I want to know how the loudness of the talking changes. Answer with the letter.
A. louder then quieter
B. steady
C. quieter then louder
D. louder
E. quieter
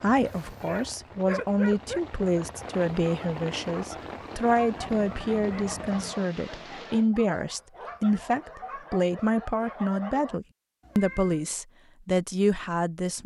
B.